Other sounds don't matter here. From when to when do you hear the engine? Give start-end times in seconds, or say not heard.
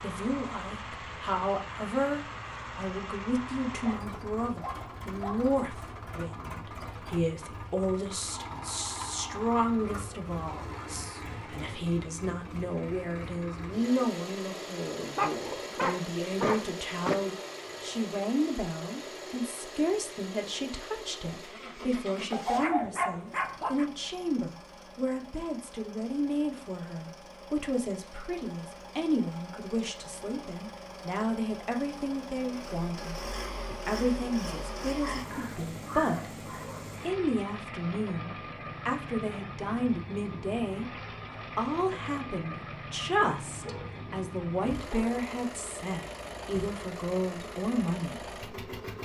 0.0-49.0.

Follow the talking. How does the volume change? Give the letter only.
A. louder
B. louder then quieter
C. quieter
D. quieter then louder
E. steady
E.